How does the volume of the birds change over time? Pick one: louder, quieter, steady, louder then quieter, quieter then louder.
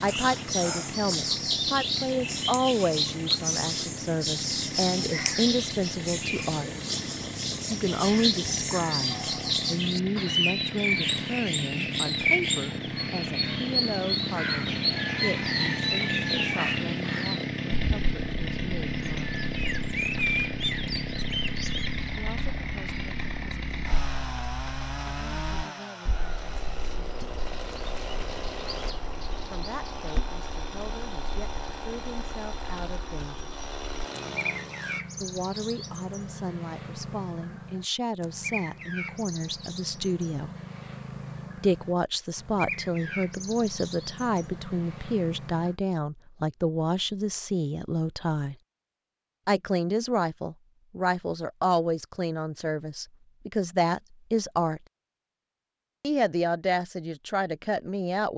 quieter.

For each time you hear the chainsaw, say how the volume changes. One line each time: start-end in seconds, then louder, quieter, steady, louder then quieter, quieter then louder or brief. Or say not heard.
0.0-35.0 louder then quieter.